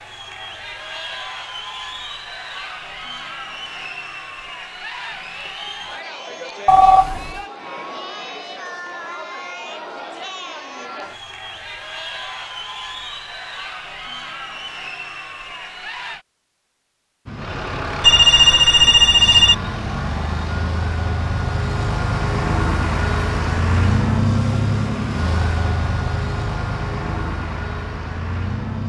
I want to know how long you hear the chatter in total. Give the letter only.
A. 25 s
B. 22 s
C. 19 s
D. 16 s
D.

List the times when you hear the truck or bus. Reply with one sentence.
You can hear the truck or bus from 17.2 to 28.8 s.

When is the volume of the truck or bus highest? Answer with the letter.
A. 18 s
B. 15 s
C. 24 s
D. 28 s
C.